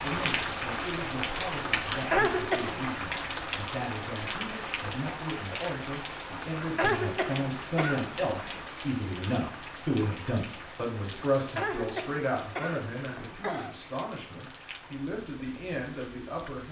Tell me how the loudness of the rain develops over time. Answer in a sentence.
The loudness of the rain goes down.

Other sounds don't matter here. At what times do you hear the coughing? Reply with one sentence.
The coughing can be heard from 1.9 to 2.9 s, from 6.6 to 8.7 s and from 11.3 to 13.8 s.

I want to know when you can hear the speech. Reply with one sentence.
You can hear the speech from 0.0 to 16.6 s.